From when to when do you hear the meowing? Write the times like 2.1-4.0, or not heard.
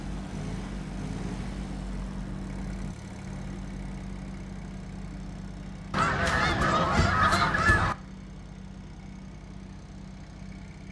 not heard.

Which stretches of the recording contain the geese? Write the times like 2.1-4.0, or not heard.
5.9-8.0.